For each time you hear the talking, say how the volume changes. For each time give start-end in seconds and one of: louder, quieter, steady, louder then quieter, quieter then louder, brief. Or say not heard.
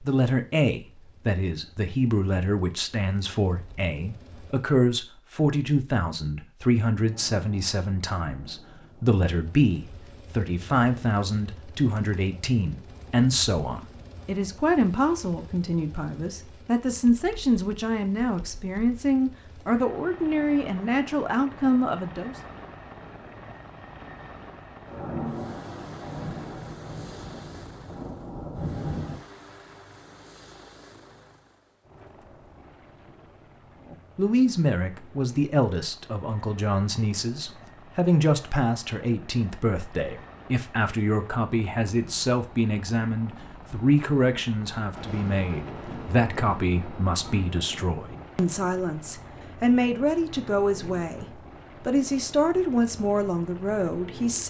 0.0-22.4 steady
33.9-54.4 steady.